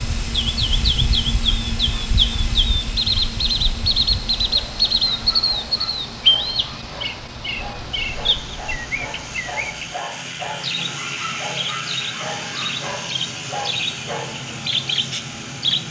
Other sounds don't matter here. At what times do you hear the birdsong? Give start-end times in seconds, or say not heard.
0.0-15.8.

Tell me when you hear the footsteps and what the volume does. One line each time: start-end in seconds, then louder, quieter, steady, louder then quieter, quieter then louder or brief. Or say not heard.
not heard.